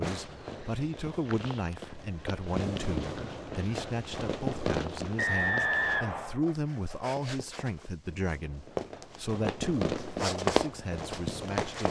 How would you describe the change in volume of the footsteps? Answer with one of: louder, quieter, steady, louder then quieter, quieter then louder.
louder.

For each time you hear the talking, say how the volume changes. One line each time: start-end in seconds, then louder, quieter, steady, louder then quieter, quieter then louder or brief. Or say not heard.
0.0-11.8 steady.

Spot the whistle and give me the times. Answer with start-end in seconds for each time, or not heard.
5.2-6.4.